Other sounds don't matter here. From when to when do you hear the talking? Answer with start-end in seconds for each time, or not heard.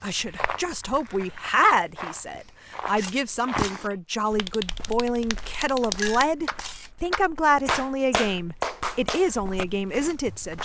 0.0-10.6.